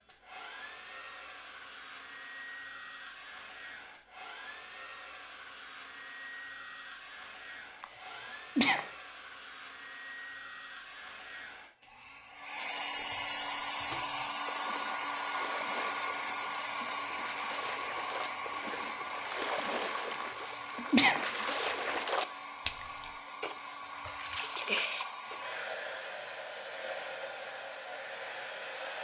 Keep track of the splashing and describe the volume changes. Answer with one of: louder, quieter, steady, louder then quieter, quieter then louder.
louder.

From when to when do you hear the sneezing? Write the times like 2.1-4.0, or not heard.
7.8-8.8, 20.2-21.2.